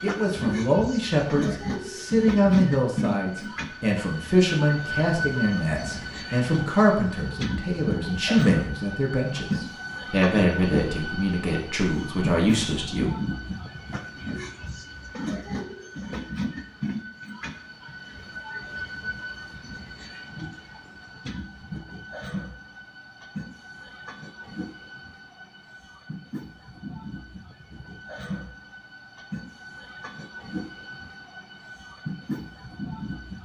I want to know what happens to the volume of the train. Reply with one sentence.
The loudness of the train goes down.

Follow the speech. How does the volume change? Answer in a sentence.
The volume of the speech stays about the same.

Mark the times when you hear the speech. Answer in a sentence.
You can hear the speech from 0.0 to 13.1 s.